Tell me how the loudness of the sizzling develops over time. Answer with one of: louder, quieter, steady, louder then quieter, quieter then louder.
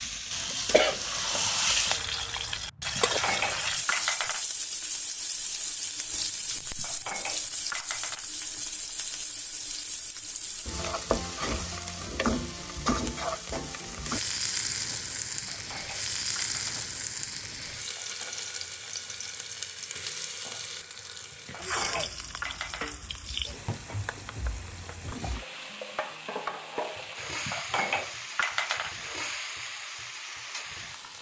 quieter.